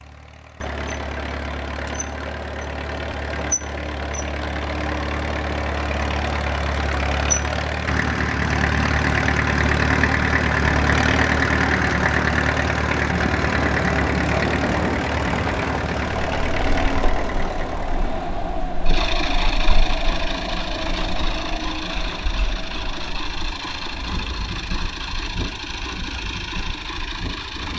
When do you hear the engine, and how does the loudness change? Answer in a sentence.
The engine can be heard from 0.0 to 27.7 s, getting louder then quieter.